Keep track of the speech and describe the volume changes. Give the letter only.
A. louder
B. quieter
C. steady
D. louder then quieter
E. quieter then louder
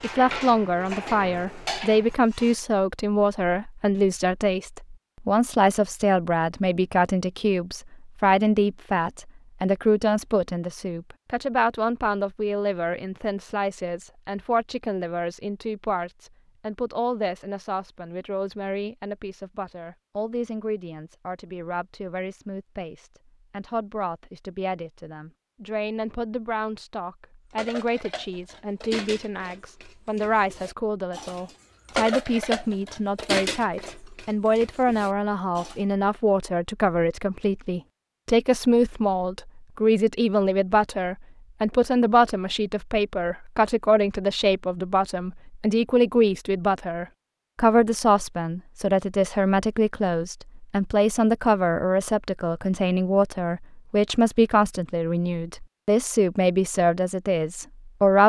E.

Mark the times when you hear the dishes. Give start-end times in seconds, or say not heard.
0.0-2.6, 27.6-35.8.